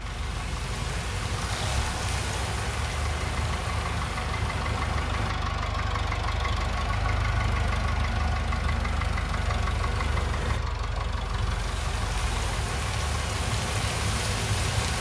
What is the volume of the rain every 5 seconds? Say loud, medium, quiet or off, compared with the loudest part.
loud, medium, loud.